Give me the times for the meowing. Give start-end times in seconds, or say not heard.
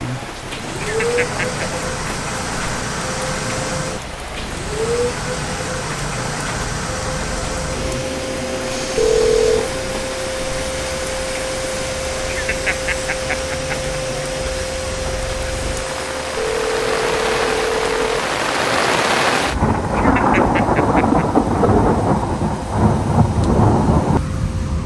not heard.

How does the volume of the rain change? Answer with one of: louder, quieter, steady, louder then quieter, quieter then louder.
louder.